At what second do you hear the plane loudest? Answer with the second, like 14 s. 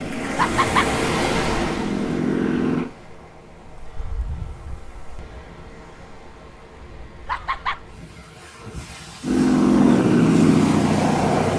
10 s.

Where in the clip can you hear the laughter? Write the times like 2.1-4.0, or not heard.
0.3-0.9, 7.2-7.8.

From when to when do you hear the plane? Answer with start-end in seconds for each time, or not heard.
0.0-2.9, 9.2-11.5.